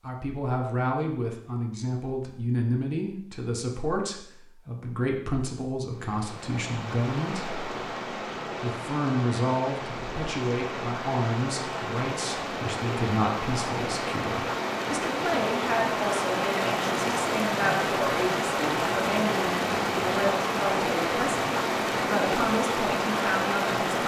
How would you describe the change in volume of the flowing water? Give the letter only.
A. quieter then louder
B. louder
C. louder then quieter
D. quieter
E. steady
B.